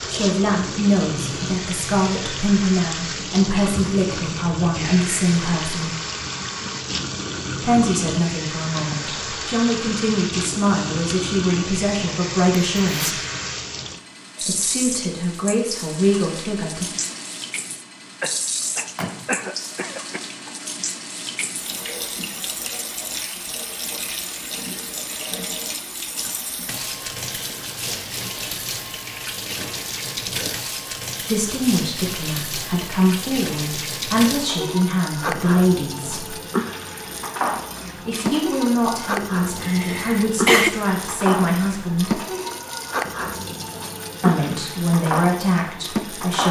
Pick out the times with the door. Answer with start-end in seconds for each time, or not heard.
18.6-19.4.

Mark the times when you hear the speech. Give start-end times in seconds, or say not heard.
0.1-6.0, 7.6-13.2, 14.4-16.9, 31.2-36.4, 38.0-42.2, 44.2-46.4.